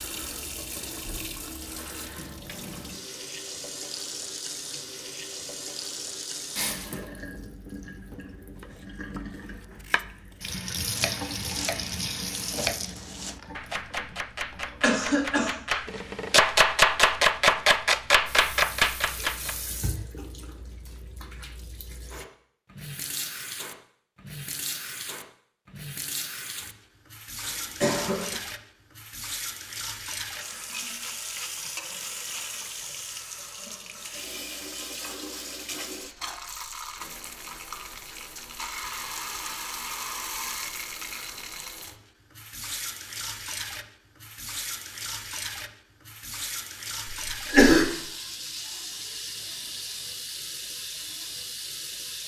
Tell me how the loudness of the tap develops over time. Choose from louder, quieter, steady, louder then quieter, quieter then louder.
steady.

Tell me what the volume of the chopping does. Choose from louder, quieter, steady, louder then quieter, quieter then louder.
louder.